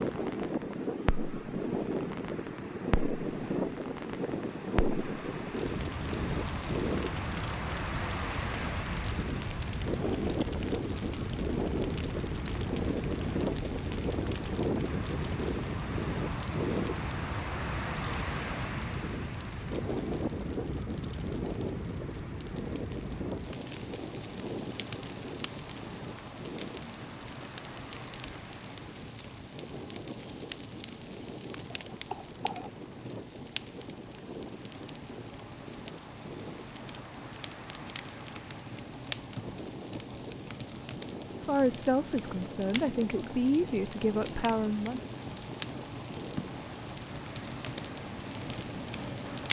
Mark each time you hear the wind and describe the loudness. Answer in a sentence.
You can hear the wind from 0.0 to 49.4 s, getting quieter.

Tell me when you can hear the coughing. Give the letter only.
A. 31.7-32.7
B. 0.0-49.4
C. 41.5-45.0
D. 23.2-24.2
A.